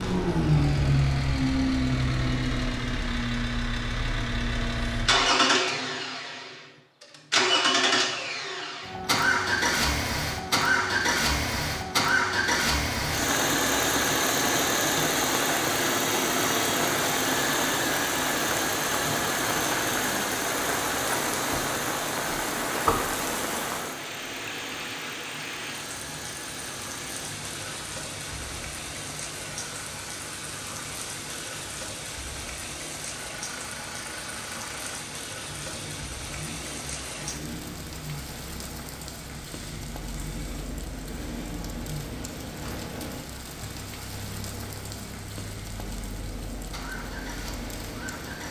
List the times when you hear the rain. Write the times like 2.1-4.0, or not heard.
13.0-48.4.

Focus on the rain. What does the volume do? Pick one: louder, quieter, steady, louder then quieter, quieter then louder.
quieter.